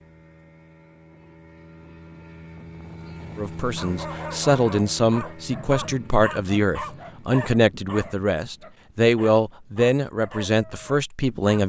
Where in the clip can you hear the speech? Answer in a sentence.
The speech can be heard from 3.4 to 11.6 s.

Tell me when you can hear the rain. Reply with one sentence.
The rain can't be heard in this clip.